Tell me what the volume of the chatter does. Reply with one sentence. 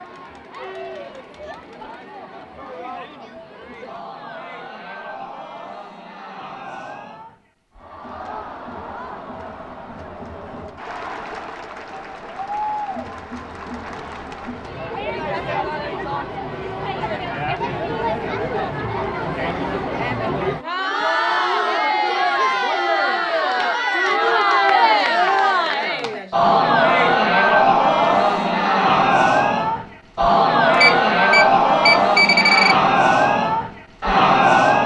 The volume of the chatter goes up.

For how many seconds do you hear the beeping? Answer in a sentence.
You can hear the beeping for 2 seconds altogether.